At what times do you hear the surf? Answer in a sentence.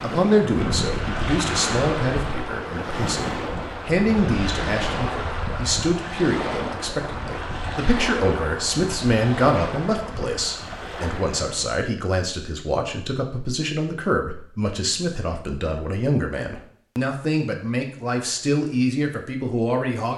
You can hear the surf from 0.0 to 11.7 s.